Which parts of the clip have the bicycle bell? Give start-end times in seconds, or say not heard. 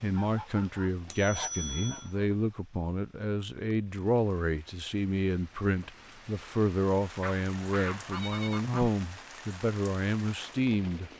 1.1-2.1.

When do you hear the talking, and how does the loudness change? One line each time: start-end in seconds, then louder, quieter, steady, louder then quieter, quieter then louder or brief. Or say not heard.
0.0-11.1 steady.